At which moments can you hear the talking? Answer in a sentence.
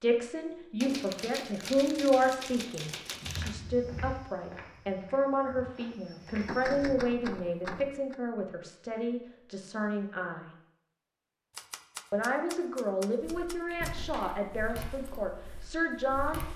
You can hear the talking from 0.0 to 10.4 s and from 12.1 to 16.4 s.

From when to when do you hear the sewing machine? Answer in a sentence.
The sewing machine can't be heard in this clip.